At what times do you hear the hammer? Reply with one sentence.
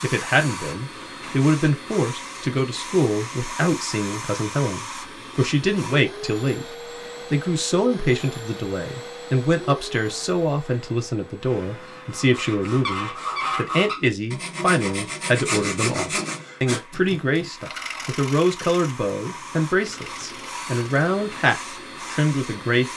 You can't hear the hammer here.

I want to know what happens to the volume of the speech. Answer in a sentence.
The loudness of the speech stays about the same.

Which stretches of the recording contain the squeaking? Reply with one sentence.
The squeaking can be heard from 12.7 to 14.1 s.